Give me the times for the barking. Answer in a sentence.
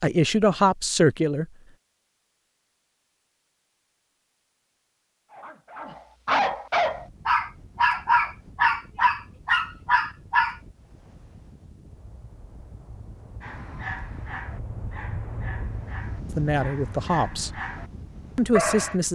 You can hear the barking from 5.3 to 10.6 s, from 13.4 to 17.9 s and from 18.5 to 18.9 s.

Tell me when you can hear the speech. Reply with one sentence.
The speech can be heard from 0.0 to 1.4 s, from 16.4 to 17.5 s and from 18.4 to 19.1 s.